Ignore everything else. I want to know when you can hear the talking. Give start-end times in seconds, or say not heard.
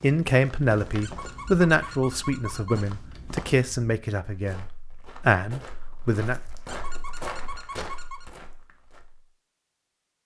0.0-6.4.